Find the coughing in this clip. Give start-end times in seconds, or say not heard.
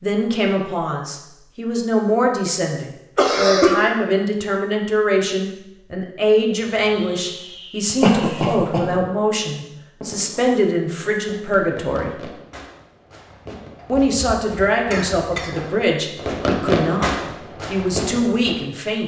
3.1-3.8, 8.0-8.9, 13.8-15.7.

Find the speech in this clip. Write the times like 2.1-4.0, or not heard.
0.0-12.2, 13.8-19.0.